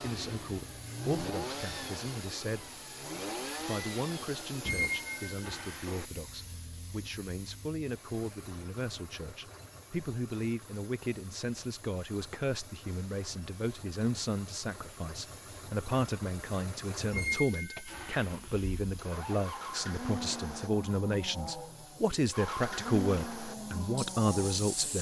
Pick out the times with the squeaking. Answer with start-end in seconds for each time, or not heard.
4.7-6.0, 17.1-18.4.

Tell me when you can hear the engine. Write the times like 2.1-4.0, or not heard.
0.0-24.9.